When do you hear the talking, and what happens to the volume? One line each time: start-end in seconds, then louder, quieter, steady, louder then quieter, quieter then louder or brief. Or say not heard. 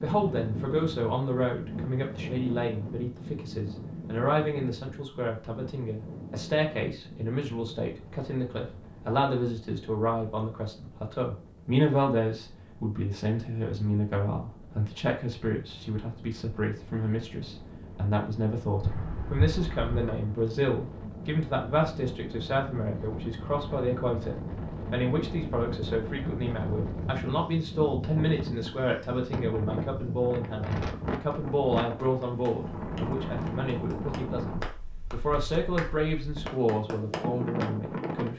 0.0-38.3 steady.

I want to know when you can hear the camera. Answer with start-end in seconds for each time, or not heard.
18.8-20.2.